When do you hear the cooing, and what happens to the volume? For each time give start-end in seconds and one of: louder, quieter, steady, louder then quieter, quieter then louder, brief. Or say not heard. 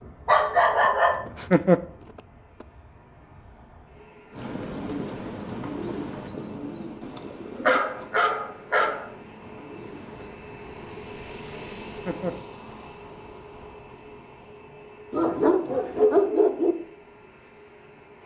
4.3-10.3 quieter.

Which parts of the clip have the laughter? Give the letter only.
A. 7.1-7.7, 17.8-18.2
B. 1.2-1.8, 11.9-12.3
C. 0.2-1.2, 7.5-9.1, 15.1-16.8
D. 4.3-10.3
B.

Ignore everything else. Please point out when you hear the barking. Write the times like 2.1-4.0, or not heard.
0.2-1.2, 7.5-9.1, 15.1-16.8.